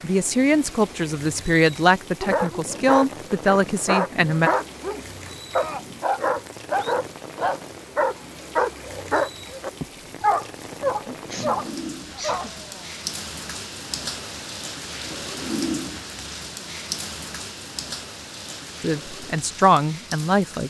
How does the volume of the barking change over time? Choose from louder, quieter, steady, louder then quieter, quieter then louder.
steady.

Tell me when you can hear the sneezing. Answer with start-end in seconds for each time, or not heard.
11.1-12.6.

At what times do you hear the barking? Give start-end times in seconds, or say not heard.
2.2-12.8.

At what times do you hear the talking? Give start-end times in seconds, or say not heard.
0.0-4.5, 18.8-20.6.